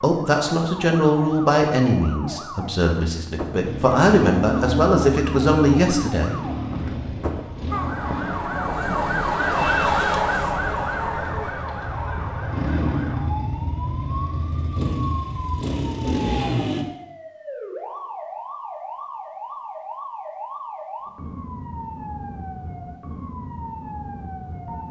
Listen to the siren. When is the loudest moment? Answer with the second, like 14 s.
10 s.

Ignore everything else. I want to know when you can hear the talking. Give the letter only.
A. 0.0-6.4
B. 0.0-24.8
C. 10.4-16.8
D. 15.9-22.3
A.